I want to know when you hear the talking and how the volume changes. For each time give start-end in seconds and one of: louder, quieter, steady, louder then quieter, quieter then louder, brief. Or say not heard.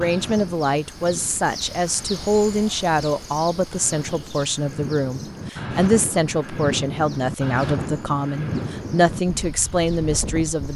0.0-10.7 steady.